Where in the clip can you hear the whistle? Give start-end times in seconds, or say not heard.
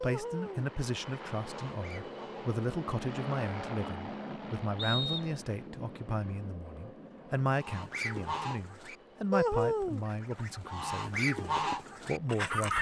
4.8-5.3.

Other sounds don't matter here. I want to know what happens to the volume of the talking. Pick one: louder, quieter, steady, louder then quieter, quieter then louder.
steady.